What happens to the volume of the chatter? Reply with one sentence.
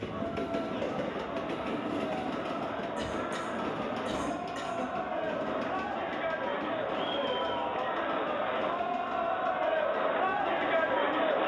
The loudness of the chatter goes up.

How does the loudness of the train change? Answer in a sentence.
The volume of the train goes down.